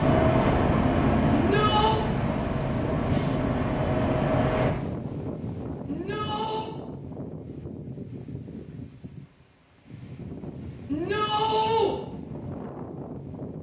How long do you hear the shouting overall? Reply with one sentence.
The shouting can be heard for 3 seconds in total.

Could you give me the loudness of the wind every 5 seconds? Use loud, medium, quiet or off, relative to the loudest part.
loud, medium, medium.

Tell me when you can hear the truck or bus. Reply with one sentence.
You can hear the truck or bus from 0.0 to 4.7 s.